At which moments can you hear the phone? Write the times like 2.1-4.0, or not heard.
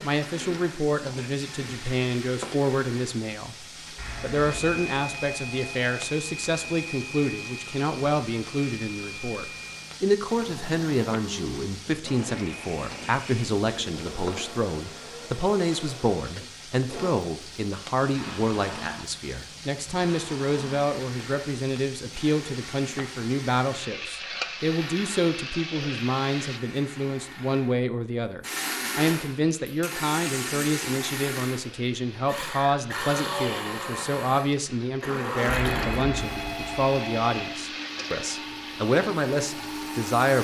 4.0-5.8, 35.5-37.5.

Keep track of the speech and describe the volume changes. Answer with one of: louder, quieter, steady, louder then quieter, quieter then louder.
steady.